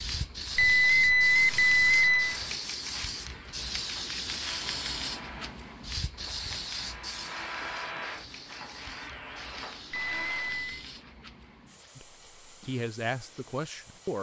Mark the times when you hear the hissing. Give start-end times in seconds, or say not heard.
0.0-14.1.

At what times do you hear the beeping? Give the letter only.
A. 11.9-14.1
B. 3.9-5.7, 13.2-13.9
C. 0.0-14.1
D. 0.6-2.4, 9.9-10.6
D.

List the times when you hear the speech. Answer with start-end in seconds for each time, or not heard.
11.9-14.1.